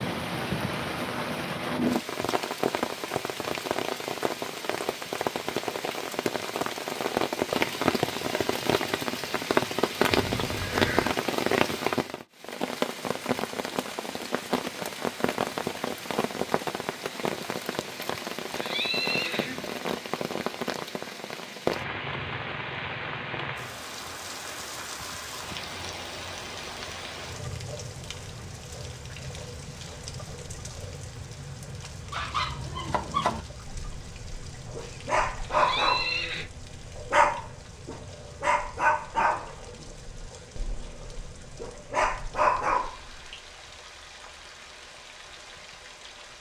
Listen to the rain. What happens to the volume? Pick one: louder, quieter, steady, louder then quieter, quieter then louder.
quieter.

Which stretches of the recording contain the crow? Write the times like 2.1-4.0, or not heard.
not heard.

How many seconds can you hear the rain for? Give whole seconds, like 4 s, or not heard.
46 s.